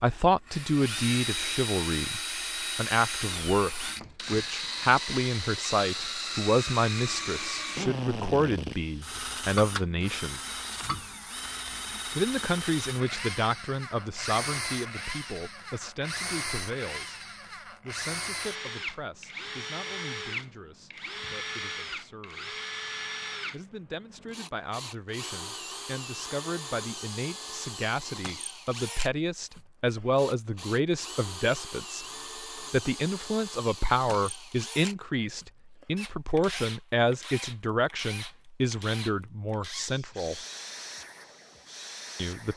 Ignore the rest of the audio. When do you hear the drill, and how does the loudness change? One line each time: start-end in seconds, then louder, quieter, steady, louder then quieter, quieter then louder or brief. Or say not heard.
0.0-42.5 quieter.